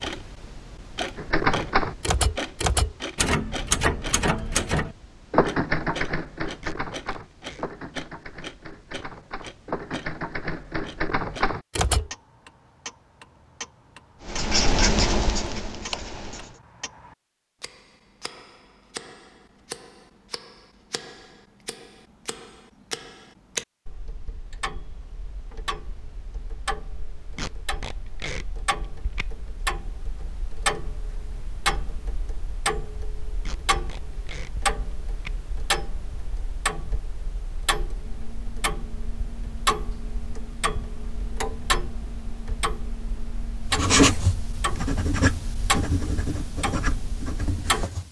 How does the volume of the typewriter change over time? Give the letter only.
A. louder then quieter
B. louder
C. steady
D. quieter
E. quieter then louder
E.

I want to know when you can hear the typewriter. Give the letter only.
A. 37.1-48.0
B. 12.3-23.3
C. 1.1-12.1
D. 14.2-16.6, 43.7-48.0
C.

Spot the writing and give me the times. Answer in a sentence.
The writing can be heard from 14.2 to 16.6 s and from 43.7 to 48.0 s.